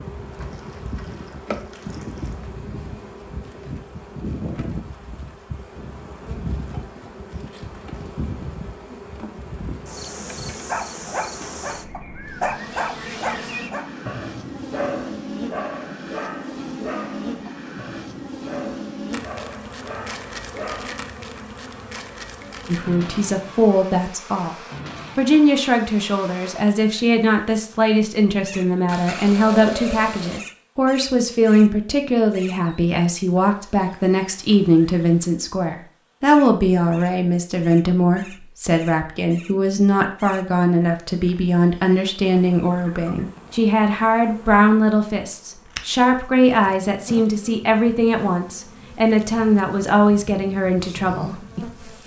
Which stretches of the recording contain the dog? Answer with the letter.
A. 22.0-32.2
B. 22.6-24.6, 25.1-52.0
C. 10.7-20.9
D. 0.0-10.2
C.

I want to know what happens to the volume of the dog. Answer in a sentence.
The loudness of the dog goes down.